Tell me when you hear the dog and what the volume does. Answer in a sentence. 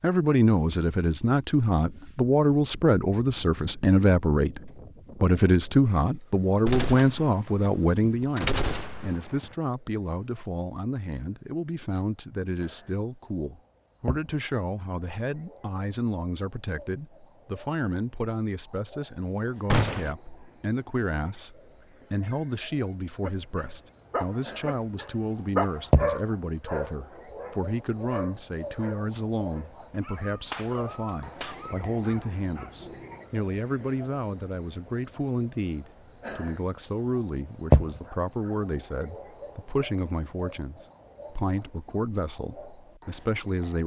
You can hear the dog from 22.2 to 32.8 s, getting louder then quieter.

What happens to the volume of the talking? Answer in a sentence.
The volume of the talking goes down.